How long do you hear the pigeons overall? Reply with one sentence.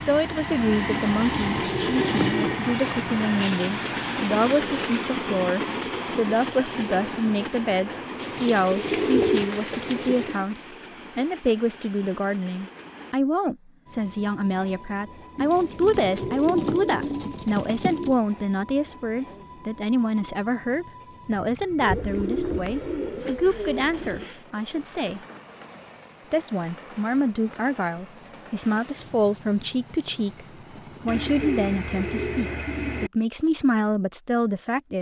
You can hear the pigeons for 11 seconds altogether.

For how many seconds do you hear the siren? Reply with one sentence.
The siren can't be heard in this clip.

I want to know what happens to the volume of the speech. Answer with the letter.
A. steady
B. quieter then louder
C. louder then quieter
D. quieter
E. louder
A.